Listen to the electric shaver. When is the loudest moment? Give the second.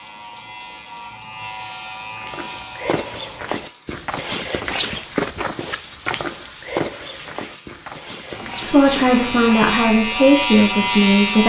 11 s.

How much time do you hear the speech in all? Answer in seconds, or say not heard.
3 s.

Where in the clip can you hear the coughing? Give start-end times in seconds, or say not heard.
not heard.